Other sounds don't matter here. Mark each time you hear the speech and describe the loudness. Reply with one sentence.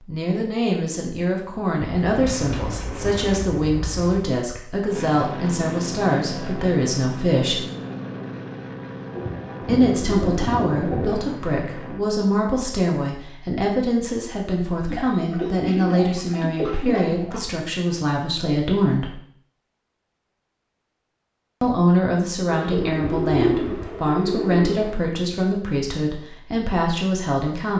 You can hear the speech from 0.1 to 7.7 s, at a steady volume; from 9.7 to 19.1 s, at a steady volume; and from 21.6 to 27.7 s, at a steady volume.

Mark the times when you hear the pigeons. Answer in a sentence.
The pigeons can be heard from 1.9 to 4.3 s, from 9.2 to 11.1 s, from 14.8 to 17.4 s and from 22.4 to 25.0 s.